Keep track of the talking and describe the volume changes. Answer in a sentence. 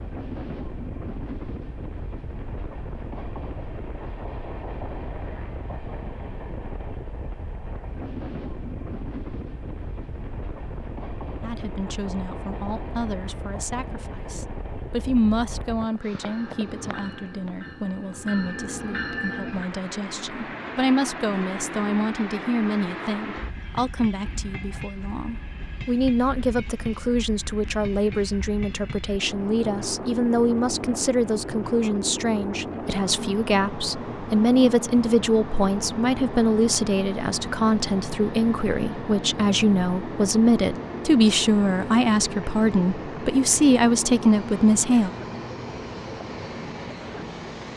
The loudness of the talking goes up.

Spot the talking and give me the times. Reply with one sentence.
You can hear the talking from 11.4 to 45.1 s.